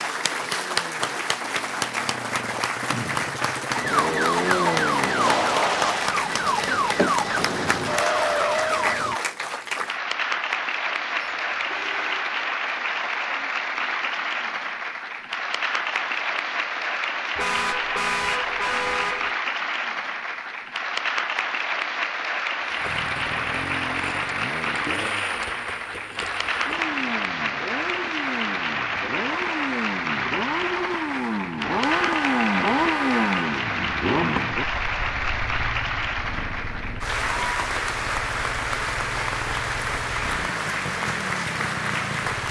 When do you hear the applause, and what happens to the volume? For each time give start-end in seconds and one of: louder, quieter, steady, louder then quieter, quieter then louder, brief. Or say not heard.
0.0-42.4 steady.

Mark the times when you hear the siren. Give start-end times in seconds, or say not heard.
3.8-9.2.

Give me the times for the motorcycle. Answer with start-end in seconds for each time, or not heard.
0.0-5.5, 22.6-42.4.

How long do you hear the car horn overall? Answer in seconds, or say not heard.
5 s.